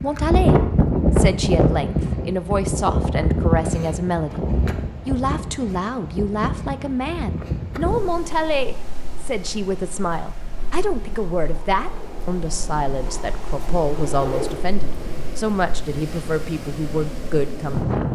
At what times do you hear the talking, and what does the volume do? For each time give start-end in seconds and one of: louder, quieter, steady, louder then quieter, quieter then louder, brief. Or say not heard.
0.0-4.4 steady
5.0-18.0 steady.